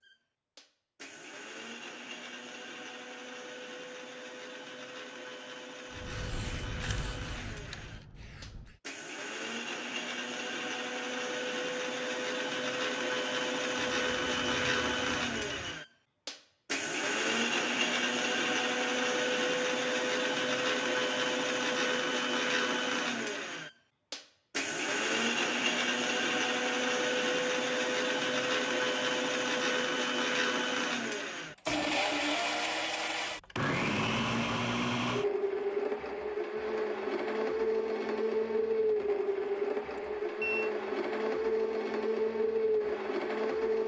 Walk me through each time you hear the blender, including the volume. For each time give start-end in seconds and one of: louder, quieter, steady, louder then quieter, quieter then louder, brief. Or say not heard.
0.0-43.8 louder.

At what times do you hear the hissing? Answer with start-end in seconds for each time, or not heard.
5.9-8.8.